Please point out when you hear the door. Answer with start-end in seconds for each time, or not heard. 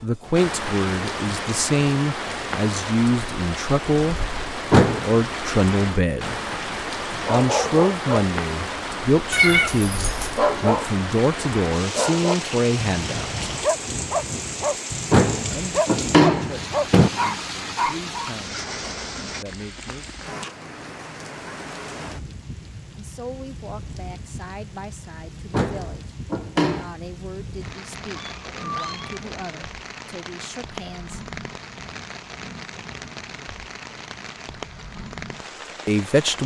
4.7-5.2, 15.1-17.1, 25.5-26.9.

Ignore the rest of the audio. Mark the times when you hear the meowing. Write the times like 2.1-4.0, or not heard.
9.3-10.3, 28.1-29.4.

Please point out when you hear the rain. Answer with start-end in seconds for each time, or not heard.
0.0-36.4.